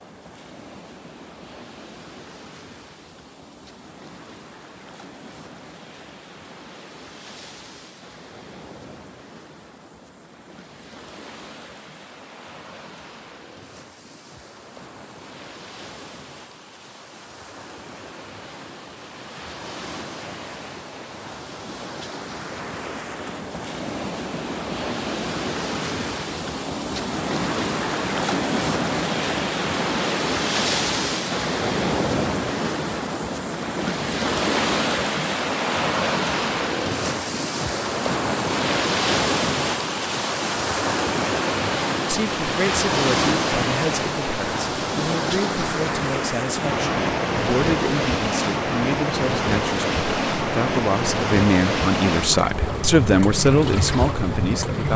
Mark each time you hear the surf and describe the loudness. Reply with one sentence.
The surf can be heard from 0.0 to 54.9 s, getting louder.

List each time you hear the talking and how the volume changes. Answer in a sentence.
The talking can be heard from 42.0 to 54.9 s, getting louder.